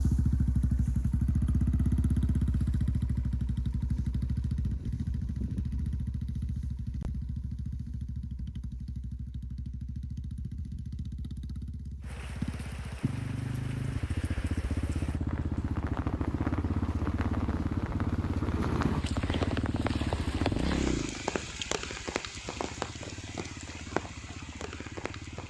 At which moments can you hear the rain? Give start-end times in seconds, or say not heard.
12.0-25.4.